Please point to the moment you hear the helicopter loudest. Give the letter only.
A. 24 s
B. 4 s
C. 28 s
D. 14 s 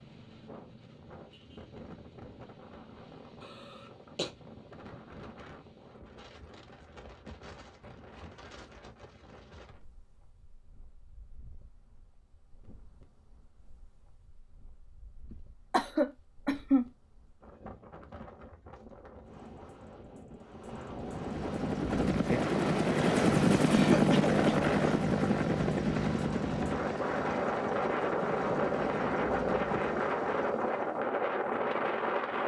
A.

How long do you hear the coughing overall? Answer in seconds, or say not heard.
3 s.